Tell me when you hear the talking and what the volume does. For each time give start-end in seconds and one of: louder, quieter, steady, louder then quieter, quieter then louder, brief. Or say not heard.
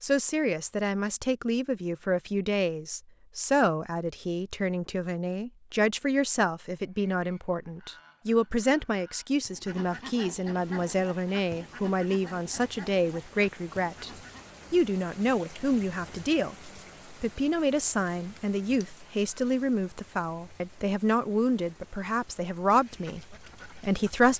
0.0-14.1 steady
14.7-24.3 steady.